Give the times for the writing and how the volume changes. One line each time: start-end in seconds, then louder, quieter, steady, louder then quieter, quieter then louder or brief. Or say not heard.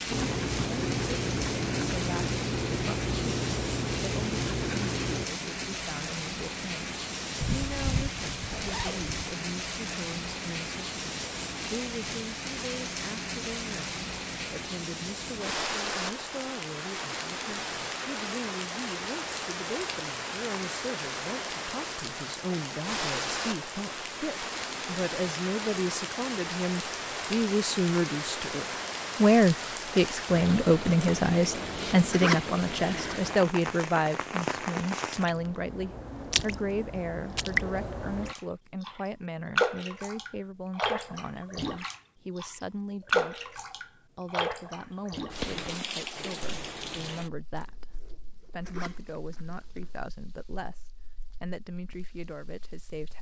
0.1-5.3 steady.